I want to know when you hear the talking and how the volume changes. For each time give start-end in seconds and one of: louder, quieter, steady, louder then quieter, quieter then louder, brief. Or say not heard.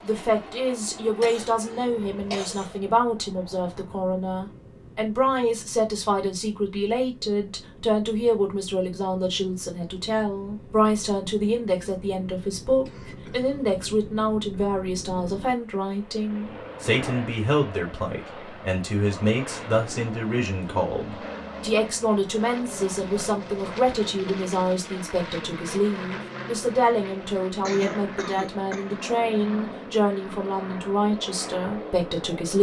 0.0-32.5 steady.